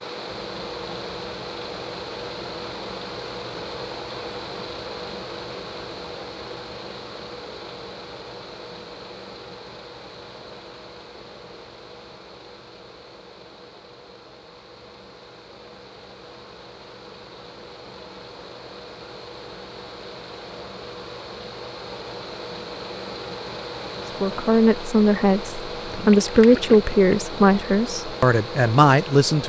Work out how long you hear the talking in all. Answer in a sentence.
The talking can be heard for 5 seconds in total.